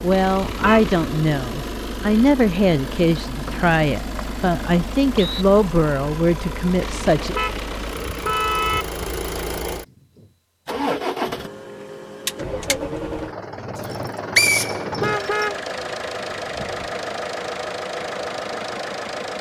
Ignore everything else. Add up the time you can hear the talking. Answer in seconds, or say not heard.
7 s.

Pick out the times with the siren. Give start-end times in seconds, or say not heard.
not heard.